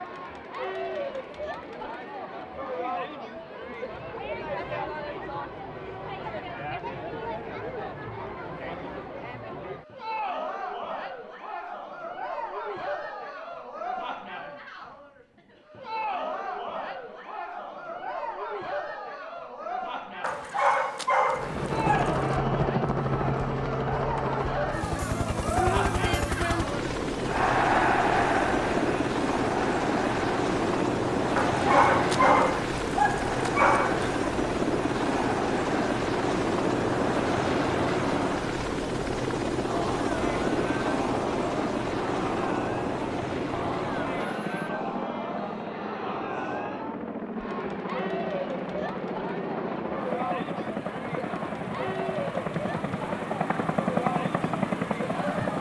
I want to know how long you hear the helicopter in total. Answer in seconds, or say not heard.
34 s.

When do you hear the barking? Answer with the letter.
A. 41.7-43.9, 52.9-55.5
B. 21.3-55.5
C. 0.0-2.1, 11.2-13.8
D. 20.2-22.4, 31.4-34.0
D.